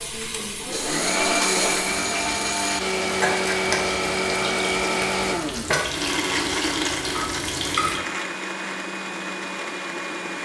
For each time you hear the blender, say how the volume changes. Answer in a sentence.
The blender can be heard from 0.0 to 10.3 s, getting quieter.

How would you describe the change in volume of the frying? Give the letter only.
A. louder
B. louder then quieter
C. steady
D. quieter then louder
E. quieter
C.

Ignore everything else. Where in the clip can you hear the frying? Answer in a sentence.
The frying can be heard from 0.0 to 8.0 s.